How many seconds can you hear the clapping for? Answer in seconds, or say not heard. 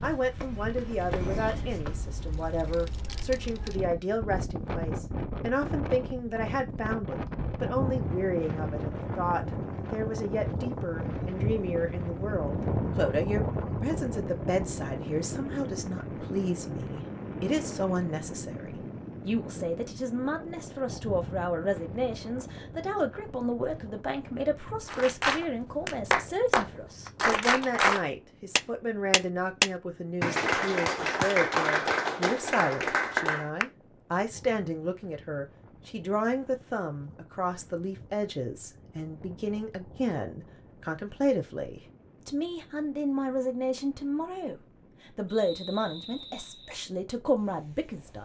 9 s.